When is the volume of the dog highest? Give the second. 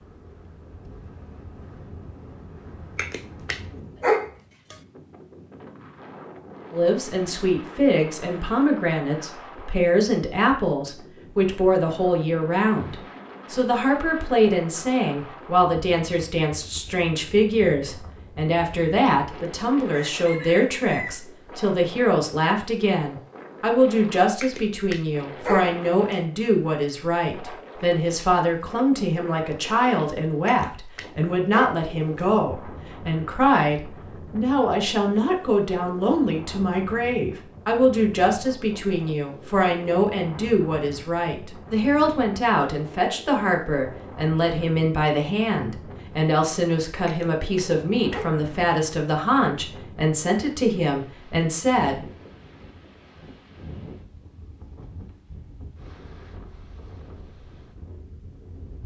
4 s.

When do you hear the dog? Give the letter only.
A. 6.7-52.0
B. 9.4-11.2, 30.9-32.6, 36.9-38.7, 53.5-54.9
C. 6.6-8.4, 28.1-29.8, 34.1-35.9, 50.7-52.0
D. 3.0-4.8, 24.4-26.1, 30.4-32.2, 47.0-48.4
D.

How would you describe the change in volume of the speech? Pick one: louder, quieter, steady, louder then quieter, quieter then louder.
steady.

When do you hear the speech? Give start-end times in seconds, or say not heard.
6.7-52.0.